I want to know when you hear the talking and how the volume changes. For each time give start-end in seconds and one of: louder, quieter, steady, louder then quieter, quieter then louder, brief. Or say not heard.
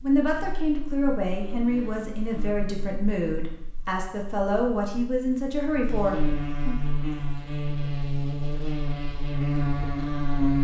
0.0-6.8 steady.